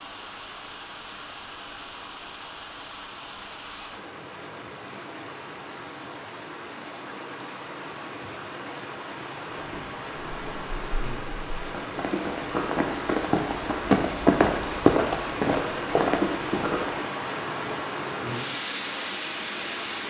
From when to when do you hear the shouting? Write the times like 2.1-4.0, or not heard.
not heard.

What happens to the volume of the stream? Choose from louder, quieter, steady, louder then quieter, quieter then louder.
louder.